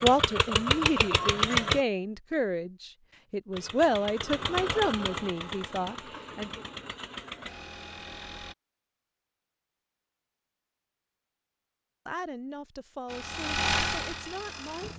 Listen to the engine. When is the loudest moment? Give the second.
1 s.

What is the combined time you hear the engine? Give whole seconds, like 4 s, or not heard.
9 s.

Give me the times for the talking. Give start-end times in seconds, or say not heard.
0.0-6.6, 12.1-14.9.